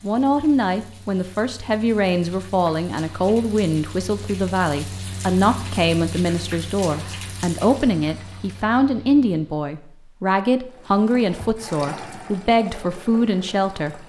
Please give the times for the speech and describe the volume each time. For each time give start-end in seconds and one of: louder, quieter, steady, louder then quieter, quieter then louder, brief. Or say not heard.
0.0-14.0 steady.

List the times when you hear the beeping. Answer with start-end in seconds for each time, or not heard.
not heard.